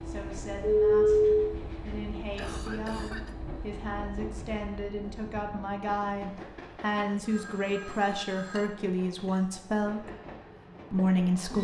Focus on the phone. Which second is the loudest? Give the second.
1 s.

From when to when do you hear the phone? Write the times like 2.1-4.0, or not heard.
0.6-1.5, 7.2-8.7.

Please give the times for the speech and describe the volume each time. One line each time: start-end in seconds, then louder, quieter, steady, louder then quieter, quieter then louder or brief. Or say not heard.
0.1-10.1 louder
10.9-11.5 brief.